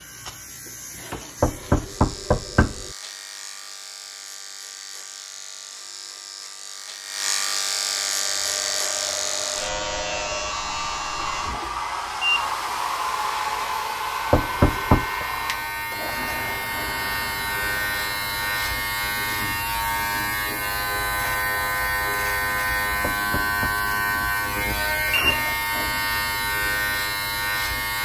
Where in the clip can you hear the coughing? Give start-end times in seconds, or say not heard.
not heard.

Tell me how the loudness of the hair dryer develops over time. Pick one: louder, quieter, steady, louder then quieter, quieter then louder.
louder then quieter.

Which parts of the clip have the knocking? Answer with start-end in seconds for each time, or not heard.
1.4-2.9, 14.3-15.2, 23.0-23.8.